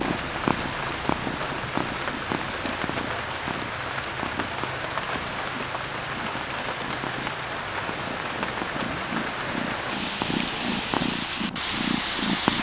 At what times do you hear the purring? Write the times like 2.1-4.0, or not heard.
0.0-12.5.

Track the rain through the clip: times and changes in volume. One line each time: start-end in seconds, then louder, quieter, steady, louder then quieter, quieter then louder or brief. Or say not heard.
0.0-12.5 steady.